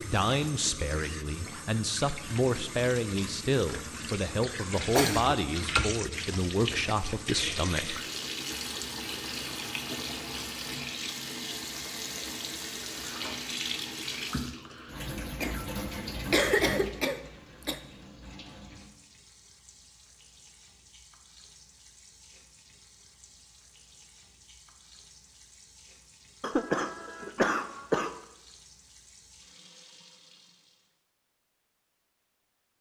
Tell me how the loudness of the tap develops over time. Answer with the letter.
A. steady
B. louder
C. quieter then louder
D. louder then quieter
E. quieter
E.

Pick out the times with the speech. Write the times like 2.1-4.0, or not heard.
0.0-8.1.